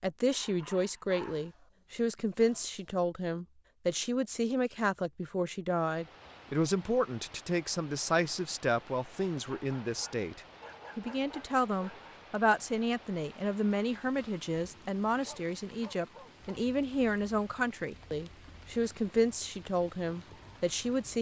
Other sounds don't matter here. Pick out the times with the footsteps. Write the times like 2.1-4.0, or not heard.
not heard.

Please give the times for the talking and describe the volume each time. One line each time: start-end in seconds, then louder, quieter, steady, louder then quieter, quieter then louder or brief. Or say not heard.
0.0-21.1 steady.